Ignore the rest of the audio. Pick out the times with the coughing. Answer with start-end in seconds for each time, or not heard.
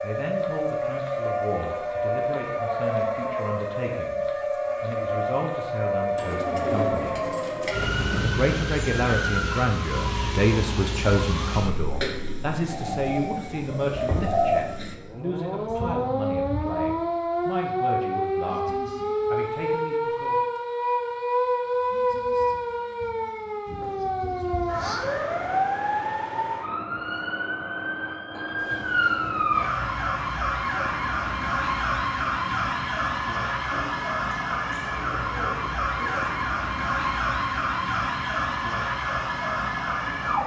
not heard.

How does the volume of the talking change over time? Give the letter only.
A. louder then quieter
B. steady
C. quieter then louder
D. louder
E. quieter
A.